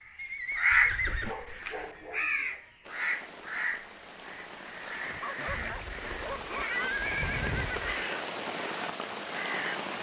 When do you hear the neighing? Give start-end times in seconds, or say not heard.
0.1-1.4, 5.5-8.1.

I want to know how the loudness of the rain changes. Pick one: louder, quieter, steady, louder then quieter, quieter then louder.
louder.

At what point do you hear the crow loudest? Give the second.
1 s.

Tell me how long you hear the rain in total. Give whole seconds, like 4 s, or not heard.
7 s.